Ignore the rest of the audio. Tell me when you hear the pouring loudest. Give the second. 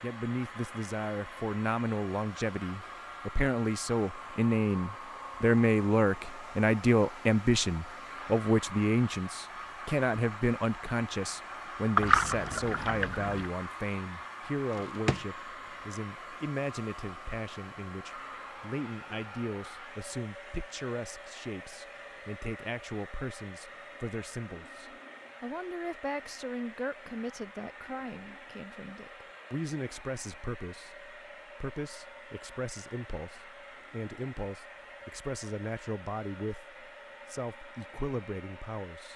12 s.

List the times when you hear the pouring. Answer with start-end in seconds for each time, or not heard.
11.9-13.4.